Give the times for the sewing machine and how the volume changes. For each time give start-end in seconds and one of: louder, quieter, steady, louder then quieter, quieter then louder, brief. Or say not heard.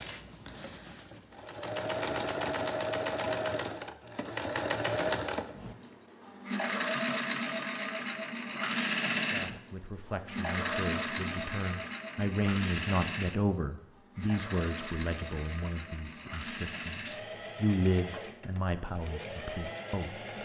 0.0-20.4 quieter.